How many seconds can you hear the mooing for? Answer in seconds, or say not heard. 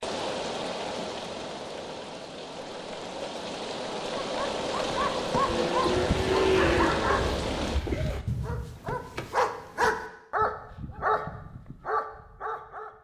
3 s.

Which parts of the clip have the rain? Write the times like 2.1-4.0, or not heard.
0.0-7.8.